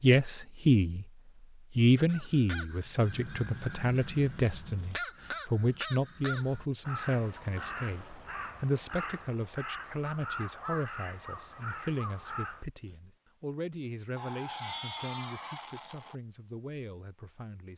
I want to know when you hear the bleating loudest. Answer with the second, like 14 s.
15 s.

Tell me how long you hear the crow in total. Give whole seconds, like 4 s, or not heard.
11 s.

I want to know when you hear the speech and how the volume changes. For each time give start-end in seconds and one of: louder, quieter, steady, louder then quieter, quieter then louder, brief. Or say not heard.
0.0-1.1 brief
1.8-17.7 quieter.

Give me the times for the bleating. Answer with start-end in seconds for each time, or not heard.
14.2-16.1.